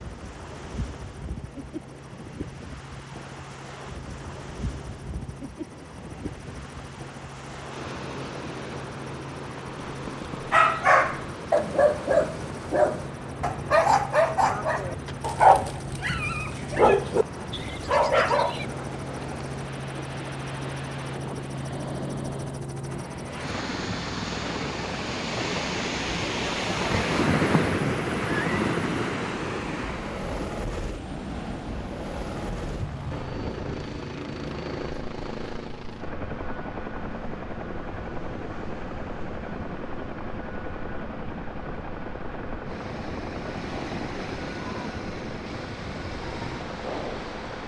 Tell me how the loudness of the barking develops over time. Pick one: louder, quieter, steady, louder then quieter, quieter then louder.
steady.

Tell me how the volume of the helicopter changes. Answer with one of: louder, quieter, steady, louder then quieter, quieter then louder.
louder.